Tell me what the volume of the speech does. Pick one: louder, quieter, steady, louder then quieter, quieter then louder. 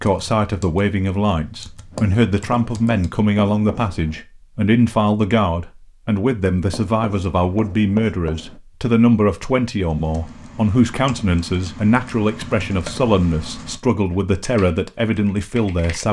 steady.